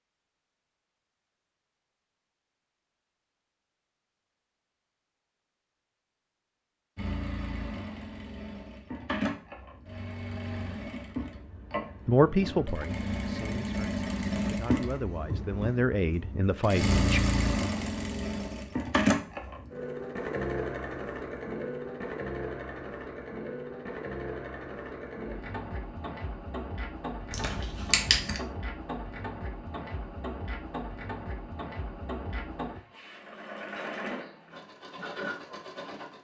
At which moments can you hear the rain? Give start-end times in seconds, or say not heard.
not heard.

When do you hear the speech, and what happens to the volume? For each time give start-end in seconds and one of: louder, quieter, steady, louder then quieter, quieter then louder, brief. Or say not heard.
12.1-17.2 quieter then louder.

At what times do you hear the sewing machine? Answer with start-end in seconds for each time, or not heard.
7.0-36.1.